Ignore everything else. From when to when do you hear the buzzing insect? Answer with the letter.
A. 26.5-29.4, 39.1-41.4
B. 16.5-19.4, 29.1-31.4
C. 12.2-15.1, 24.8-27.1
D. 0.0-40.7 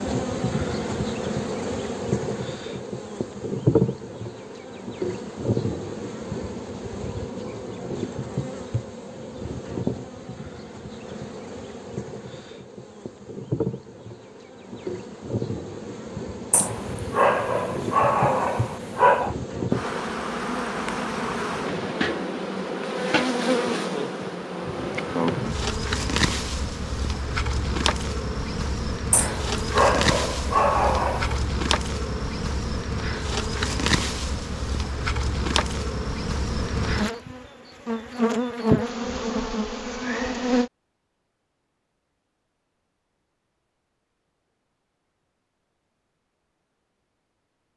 D.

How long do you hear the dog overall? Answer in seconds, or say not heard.
5 s.